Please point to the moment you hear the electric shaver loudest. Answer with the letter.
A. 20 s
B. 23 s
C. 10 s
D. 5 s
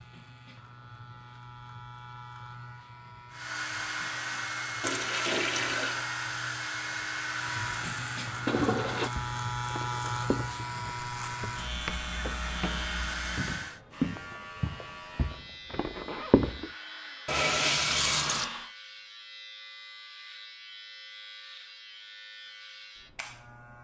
C.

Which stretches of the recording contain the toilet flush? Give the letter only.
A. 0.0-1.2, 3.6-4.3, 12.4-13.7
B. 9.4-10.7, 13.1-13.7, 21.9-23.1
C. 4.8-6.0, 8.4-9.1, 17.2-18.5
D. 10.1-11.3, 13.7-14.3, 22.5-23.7
C.